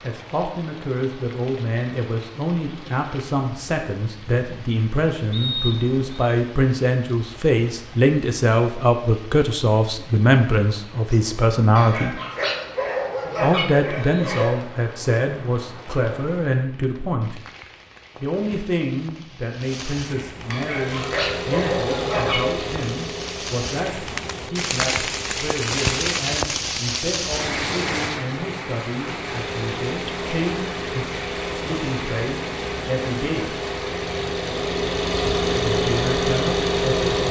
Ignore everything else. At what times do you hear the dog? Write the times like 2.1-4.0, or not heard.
11.8-14.7, 20.5-22.6.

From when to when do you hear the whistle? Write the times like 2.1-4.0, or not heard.
5.3-6.3.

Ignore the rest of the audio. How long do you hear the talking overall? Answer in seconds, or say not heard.
33 s.